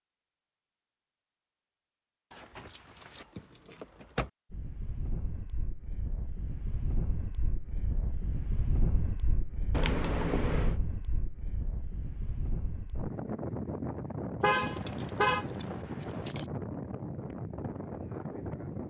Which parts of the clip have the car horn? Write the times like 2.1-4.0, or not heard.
14.4-15.4.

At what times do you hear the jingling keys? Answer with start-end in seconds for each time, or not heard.
2.3-4.3, 9.7-10.8, 14.6-16.5.